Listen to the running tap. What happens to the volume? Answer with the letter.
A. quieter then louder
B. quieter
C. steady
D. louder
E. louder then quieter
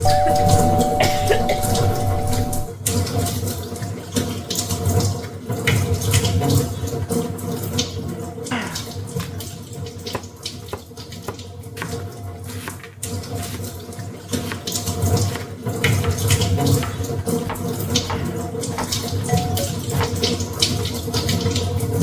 A.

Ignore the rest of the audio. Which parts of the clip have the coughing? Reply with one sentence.
You can hear the coughing from 0.1 to 1.8 s.